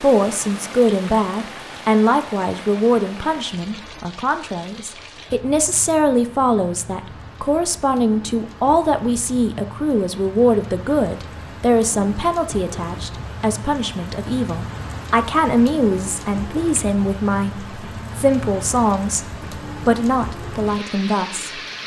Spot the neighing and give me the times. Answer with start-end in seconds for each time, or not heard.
not heard.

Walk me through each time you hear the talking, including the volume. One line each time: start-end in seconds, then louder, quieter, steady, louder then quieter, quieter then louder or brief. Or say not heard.
0.0-21.6 steady.